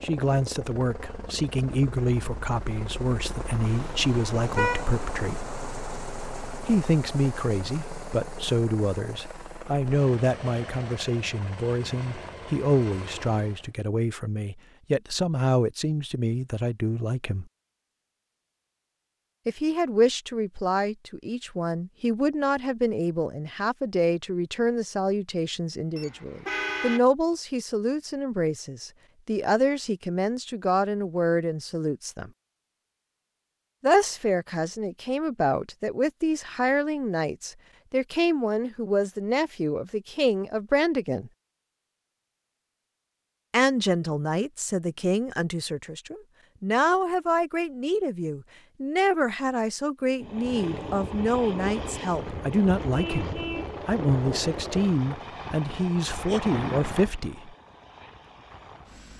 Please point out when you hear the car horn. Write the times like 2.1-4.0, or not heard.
3.6-4.9, 25.9-27.0, 52.9-53.8.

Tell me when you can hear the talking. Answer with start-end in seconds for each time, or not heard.
0.0-5.5, 6.7-17.4, 19.4-32.3, 33.8-41.3, 43.5-57.5.